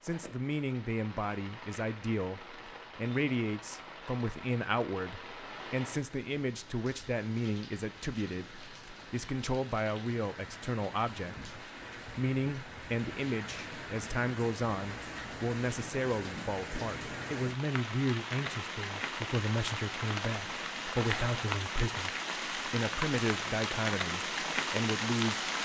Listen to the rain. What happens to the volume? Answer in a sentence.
The loudness of the rain goes up.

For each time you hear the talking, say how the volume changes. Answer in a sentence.
The talking can be heard from 0.0 to 25.5 s, at a steady volume.